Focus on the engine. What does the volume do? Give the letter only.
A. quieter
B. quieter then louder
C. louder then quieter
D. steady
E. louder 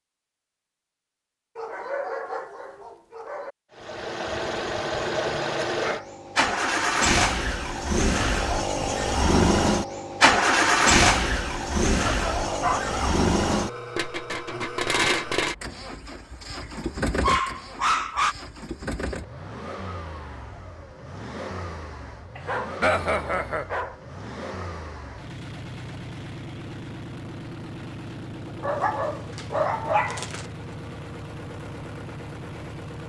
A.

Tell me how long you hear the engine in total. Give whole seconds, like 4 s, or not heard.
29 s.